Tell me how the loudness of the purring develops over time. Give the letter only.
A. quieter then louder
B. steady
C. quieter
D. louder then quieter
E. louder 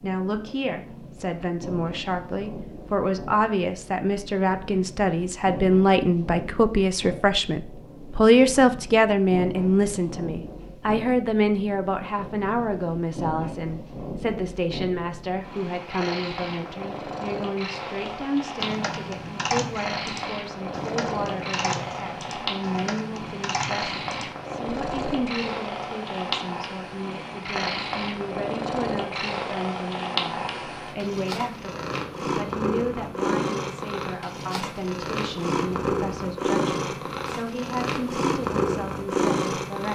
E.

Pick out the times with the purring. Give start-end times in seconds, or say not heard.
0.0-39.9.